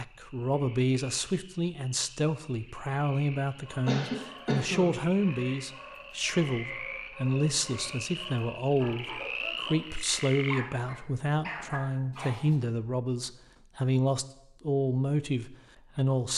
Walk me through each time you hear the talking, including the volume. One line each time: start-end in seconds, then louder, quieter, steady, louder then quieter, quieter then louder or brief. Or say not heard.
0.0-16.3 steady.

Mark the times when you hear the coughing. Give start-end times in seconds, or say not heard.
3.9-5.0.